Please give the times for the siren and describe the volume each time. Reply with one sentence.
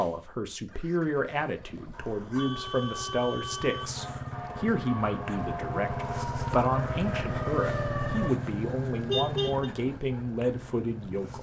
You can hear the siren from 3.8 to 8.3 s, getting louder.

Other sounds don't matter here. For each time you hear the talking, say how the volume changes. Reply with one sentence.
The talking can be heard from 0.0 to 11.3 s, at a steady volume.